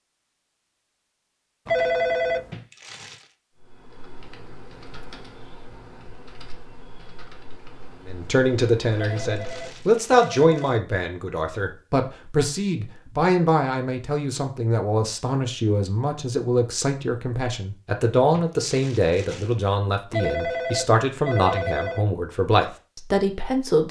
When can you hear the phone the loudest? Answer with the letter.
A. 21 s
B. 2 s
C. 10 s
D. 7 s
B.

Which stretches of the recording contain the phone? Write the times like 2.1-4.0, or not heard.
1.6-2.5, 8.9-10.8, 20.1-22.1.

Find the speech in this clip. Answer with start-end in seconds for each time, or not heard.
8.1-23.8.